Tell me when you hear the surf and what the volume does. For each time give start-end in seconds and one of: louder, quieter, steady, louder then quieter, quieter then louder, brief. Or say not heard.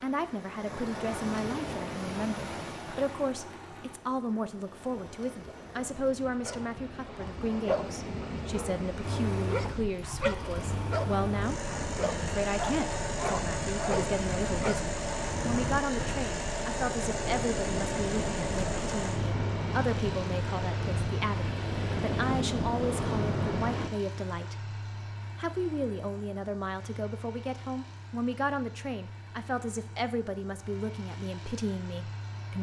0.0-23.9 louder.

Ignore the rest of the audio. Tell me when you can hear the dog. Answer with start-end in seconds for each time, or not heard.
6.5-14.9.